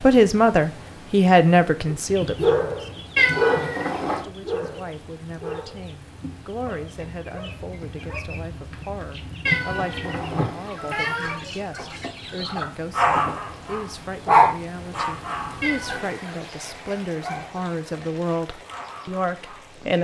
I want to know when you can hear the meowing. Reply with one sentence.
The meowing can be heard from 3.1 to 4.2 s, from 9.4 to 11.4 s and from 15.6 to 16.3 s.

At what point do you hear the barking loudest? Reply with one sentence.
The volume of the barking peaks at 14 seconds.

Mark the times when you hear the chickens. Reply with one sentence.
You can hear the chickens from 2.0 to 13.4 s.